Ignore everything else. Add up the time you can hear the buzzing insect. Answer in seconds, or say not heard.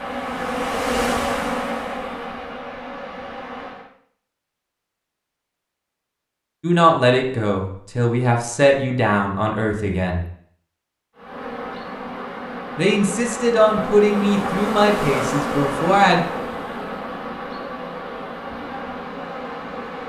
13 s.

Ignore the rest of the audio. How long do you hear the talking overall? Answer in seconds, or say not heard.
7 s.